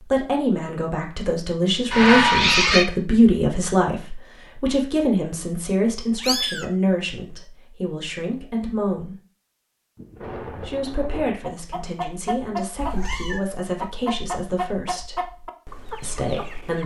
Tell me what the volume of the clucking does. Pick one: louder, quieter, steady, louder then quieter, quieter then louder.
quieter.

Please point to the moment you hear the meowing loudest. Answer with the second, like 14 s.
2 s.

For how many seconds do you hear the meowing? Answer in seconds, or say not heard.
2 s.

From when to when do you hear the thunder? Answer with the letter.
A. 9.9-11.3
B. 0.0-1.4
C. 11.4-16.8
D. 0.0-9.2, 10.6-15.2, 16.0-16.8
A.